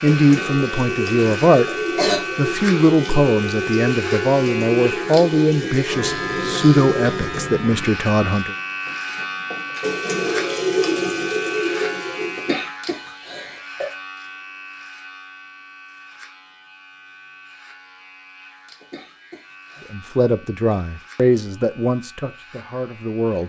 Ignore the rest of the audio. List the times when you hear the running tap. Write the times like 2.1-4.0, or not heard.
0.0-12.7.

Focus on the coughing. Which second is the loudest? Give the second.
2 s.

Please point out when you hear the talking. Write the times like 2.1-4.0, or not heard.
0.0-1.7, 2.4-8.6, 19.9-23.4.